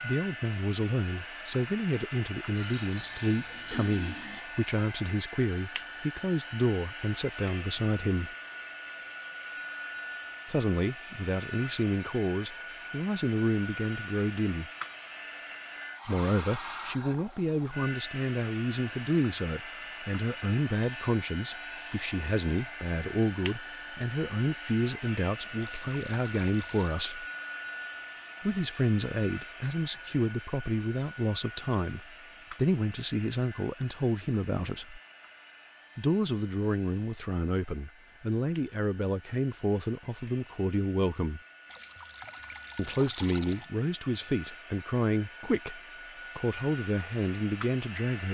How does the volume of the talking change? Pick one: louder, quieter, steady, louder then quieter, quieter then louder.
steady.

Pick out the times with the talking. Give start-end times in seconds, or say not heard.
0.0-8.3, 10.5-14.7, 16.1-27.2, 28.4-35.0, 36.0-41.4, 42.8-48.2.